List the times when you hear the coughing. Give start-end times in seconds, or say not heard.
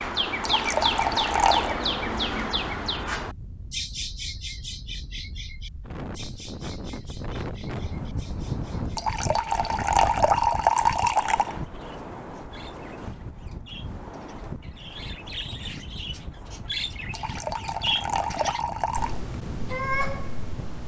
not heard.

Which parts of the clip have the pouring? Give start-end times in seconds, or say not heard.
0.4-1.8, 8.9-11.6, 17.1-19.2.